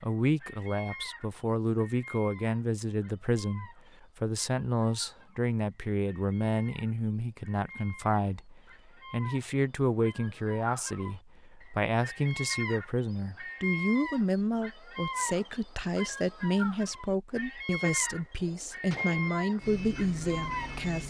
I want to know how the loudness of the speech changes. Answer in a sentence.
The loudness of the speech stays about the same.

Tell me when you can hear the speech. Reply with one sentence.
You can hear the speech from 0.0 to 21.0 s.